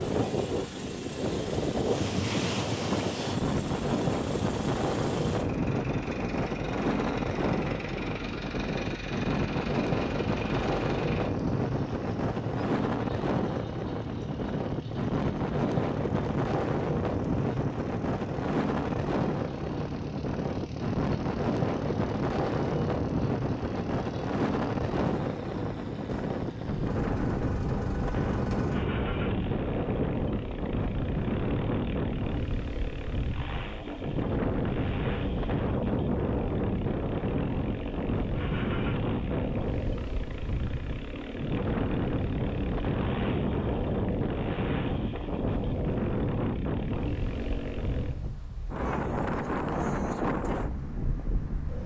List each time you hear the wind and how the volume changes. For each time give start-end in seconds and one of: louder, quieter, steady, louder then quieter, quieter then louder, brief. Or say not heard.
0.0-51.8 steady.